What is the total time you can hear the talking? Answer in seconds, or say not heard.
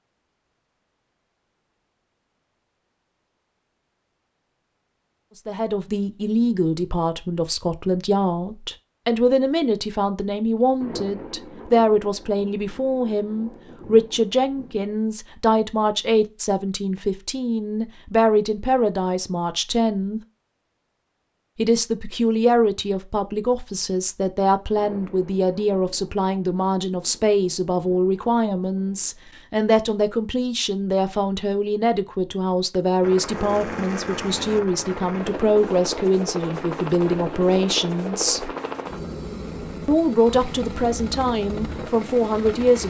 35 s.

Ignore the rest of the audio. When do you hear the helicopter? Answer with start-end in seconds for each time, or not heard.
33.0-42.8.